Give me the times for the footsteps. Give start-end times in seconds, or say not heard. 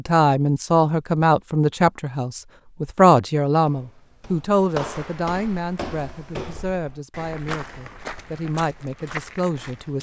3.6-9.9.